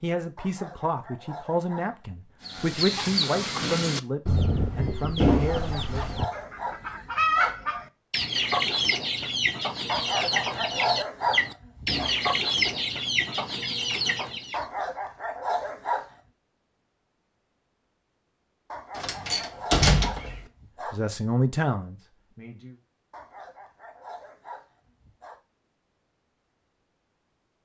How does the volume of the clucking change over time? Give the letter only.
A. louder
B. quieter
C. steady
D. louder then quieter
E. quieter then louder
C.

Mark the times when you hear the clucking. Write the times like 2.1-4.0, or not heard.
2.4-14.7.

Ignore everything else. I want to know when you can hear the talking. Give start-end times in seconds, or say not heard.
0.0-6.0, 20.9-22.8.